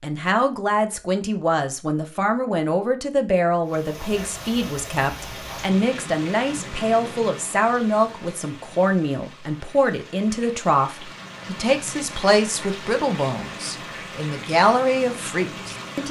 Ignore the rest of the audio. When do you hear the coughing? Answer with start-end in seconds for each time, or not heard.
not heard.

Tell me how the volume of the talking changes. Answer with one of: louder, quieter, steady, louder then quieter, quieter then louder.
steady.